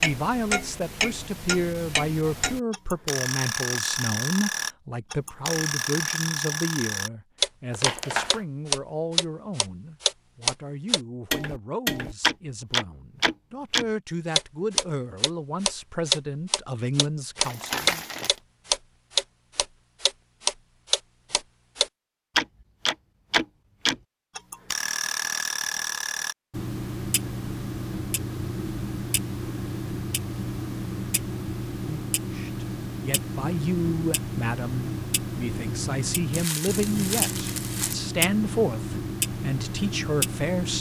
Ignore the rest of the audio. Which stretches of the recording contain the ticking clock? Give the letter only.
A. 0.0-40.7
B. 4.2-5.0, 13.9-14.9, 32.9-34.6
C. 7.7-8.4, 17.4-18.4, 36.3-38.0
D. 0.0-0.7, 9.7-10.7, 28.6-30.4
A.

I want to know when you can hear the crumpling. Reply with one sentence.
The crumpling can be heard from 7.7 to 8.4 s, from 17.4 to 18.4 s and from 36.3 to 38.0 s.